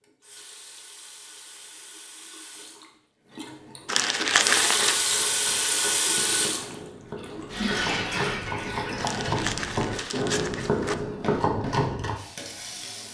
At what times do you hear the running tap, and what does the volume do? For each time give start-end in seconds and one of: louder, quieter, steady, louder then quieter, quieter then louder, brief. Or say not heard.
0.0-13.0 louder then quieter.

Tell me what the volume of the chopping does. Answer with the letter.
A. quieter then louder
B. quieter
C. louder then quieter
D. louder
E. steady
D.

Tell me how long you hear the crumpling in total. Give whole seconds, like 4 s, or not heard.
3 s.